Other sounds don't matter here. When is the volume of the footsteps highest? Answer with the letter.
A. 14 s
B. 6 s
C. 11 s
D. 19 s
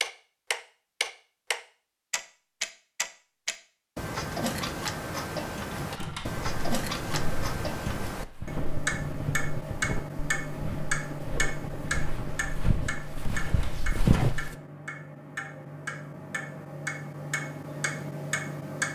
A.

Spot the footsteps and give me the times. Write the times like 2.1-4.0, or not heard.
6.0-14.6.